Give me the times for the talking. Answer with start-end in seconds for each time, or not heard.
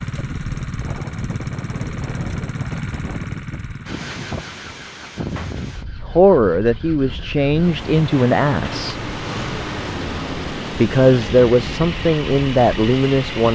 6.2-8.9, 10.3-13.4.